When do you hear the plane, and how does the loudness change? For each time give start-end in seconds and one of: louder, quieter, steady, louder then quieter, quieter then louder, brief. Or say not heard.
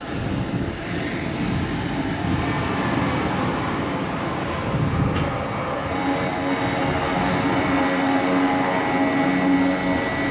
2.3-10.2 louder.